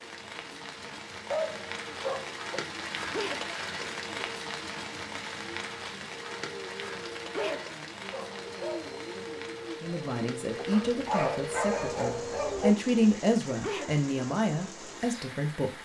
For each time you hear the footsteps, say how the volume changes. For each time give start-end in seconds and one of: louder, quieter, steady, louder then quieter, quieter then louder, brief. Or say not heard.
not heard.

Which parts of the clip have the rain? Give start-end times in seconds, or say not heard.
0.0-15.8.